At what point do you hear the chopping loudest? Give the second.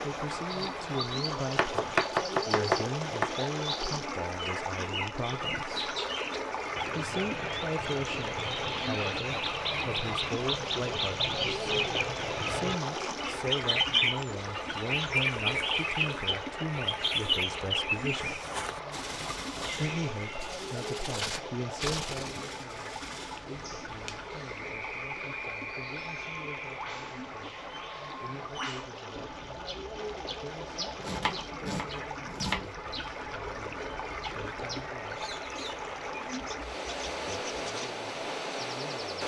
2 s.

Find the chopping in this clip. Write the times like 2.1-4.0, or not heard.
1.6-3.3, 31.0-32.7.